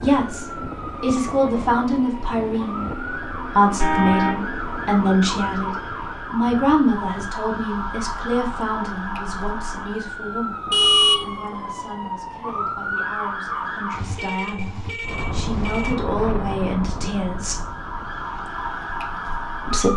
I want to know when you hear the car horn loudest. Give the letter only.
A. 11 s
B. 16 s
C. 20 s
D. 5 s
A.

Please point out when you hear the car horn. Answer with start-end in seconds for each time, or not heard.
3.8-4.5, 10.7-11.3, 13.9-15.9.